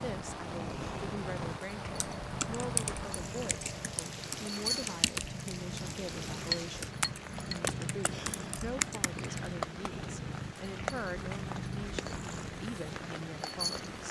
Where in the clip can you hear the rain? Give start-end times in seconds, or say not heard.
0.0-14.0.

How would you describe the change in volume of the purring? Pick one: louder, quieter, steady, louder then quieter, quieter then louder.
steady.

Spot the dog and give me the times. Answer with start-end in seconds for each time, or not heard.
not heard.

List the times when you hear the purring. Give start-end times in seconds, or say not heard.
0.0-14.0.